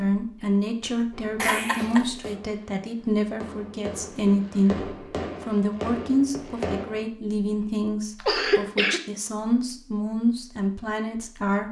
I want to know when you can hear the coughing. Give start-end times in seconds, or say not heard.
1.4-2.3, 8.2-9.0.